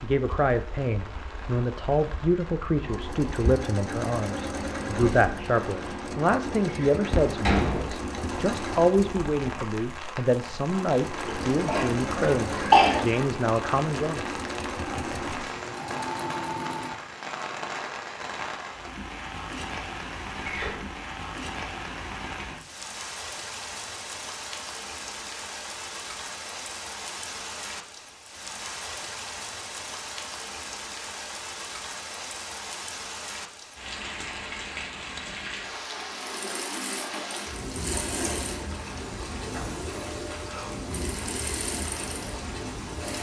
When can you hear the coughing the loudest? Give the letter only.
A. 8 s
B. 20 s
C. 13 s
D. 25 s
C.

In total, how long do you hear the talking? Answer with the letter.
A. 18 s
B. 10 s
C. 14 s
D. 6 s
C.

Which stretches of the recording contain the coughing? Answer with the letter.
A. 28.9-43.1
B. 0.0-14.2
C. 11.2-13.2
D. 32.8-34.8
C.